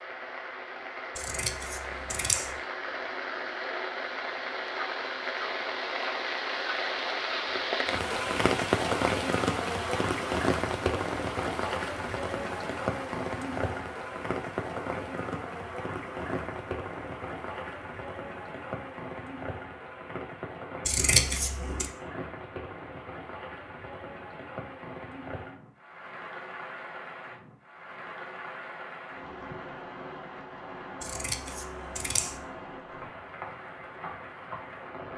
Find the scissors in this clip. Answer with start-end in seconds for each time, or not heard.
1.1-2.5, 20.9-21.9, 31.0-32.4.